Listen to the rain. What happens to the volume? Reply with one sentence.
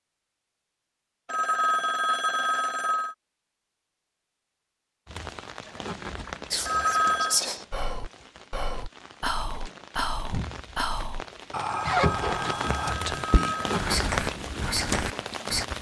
The loudness of the rain goes down, then up.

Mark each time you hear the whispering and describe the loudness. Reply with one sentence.
You can hear the whispering from 6.5 to 15.7 s, at a steady volume.